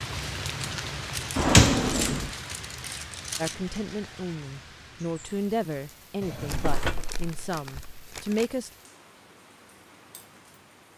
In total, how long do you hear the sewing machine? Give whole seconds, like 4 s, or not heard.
not heard.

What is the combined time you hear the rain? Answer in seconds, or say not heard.
11 s.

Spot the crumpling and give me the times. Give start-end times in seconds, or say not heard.
1.1-3.6, 6.5-8.5.